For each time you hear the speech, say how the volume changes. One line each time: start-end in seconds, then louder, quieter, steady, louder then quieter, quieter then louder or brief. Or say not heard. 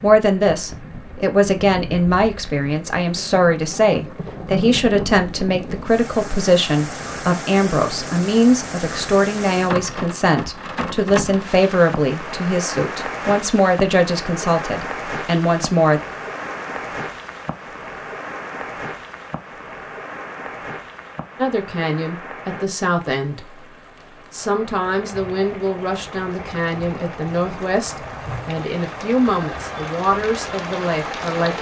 0.0-16.0 steady
21.4-31.5 steady.